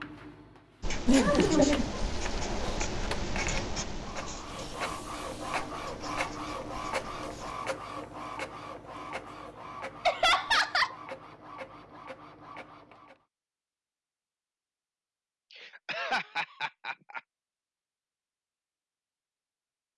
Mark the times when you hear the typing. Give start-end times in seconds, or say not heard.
not heard.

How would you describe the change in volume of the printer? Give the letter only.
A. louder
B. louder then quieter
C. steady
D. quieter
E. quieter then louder
B.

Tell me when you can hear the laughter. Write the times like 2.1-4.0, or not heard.
1.1-2.8, 10.1-10.9, 15.5-17.2.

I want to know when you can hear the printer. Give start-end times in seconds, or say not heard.
0.0-13.2.